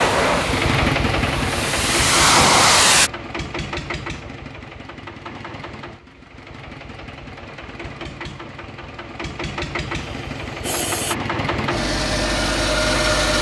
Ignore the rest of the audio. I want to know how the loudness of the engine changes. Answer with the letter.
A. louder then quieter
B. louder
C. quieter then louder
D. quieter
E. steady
C.